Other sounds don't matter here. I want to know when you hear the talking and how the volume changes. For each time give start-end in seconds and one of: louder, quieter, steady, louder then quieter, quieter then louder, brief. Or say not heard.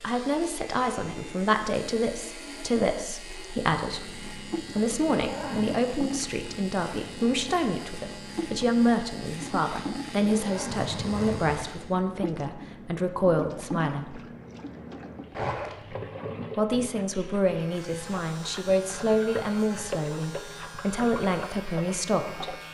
0.0-14.2 steady
16.6-22.6 steady.